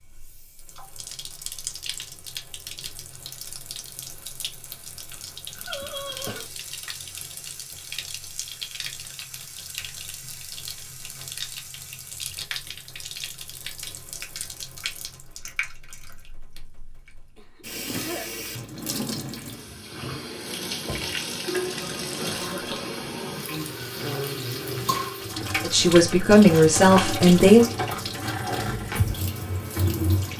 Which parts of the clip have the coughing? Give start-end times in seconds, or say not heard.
5.7-6.5, 17.4-18.3, 22.2-22.8.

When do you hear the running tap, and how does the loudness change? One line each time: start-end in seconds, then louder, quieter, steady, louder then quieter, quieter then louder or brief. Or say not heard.
0.0-30.3 louder.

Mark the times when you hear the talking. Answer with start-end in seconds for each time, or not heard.
25.6-27.6.